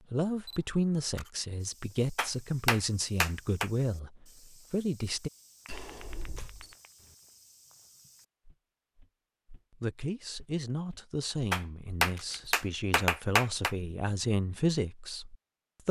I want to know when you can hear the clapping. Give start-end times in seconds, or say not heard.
2.1-3.7, 5.7-7.2, 11.5-13.8.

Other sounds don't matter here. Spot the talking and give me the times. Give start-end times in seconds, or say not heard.
0.1-5.3, 9.7-15.8.